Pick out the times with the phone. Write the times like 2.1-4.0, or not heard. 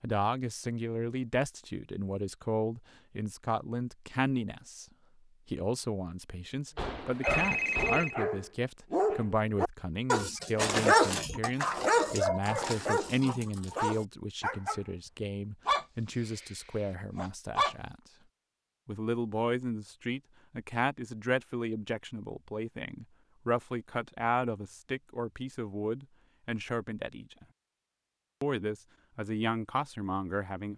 6.8-8.2.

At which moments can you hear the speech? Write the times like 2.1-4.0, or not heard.
0.0-4.8, 5.5-17.9, 18.9-27.4, 28.4-30.7.